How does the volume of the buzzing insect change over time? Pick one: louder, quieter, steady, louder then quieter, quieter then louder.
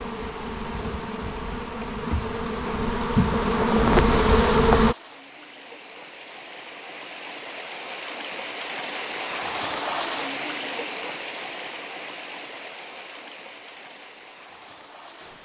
louder.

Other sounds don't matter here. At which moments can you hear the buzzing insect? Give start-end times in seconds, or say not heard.
0.0-5.0.